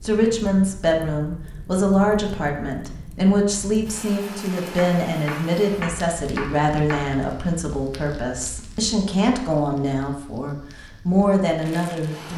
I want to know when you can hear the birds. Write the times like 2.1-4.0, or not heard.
not heard.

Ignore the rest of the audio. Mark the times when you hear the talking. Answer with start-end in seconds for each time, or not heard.
0.0-12.3.